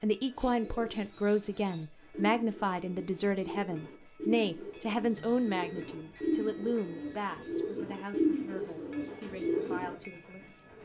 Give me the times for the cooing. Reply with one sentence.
The cooing can be heard from 0.3 to 9.9 s.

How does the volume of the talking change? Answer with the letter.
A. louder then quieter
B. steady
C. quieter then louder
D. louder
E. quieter
E.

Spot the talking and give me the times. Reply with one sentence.
You can hear the talking from 0.0 to 10.8 s.